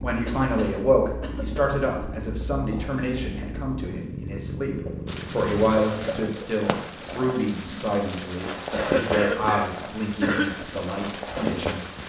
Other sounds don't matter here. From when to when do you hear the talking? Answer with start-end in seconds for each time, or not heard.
0.0-11.8.